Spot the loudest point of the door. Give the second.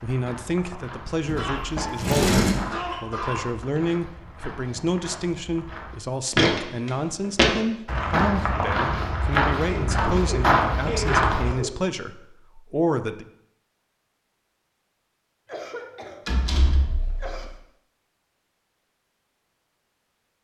2 s.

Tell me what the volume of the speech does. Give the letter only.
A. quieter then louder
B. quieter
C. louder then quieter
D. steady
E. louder
D.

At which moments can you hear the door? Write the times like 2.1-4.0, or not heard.
1.2-2.6, 16.2-17.4.